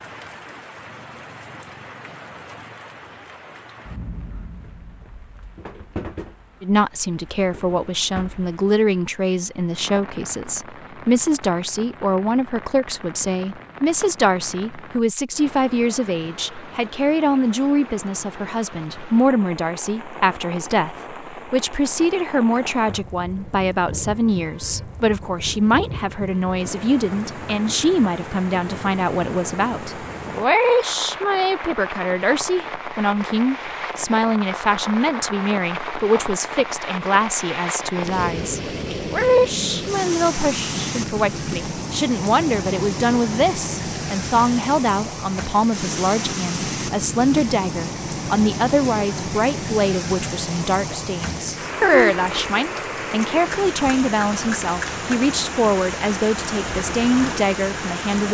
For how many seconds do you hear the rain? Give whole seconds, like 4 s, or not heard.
58 s.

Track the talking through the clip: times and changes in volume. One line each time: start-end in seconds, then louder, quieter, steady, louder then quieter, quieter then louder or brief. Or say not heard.
6.6-58.2 steady.